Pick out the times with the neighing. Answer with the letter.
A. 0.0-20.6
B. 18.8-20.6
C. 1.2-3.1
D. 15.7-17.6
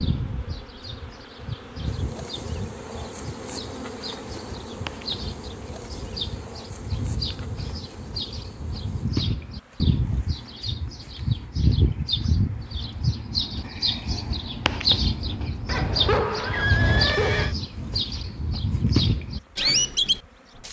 D.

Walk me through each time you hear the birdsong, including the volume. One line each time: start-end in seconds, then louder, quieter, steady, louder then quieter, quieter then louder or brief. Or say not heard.
0.0-20.6 louder.